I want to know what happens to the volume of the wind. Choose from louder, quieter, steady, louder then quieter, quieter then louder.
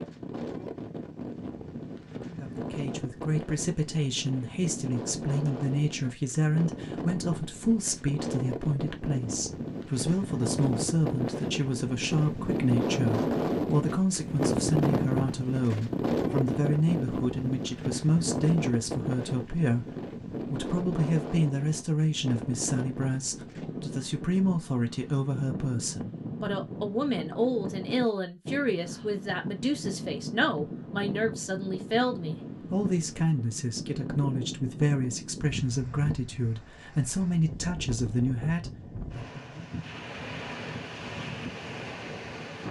louder then quieter.